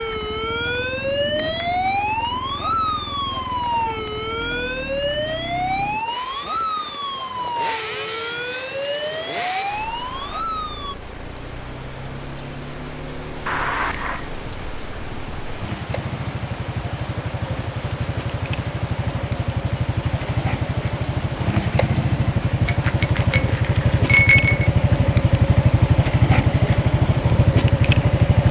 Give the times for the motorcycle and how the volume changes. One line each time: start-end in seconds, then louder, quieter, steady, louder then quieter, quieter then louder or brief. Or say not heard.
0.0-28.4 louder.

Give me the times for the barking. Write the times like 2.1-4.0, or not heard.
not heard.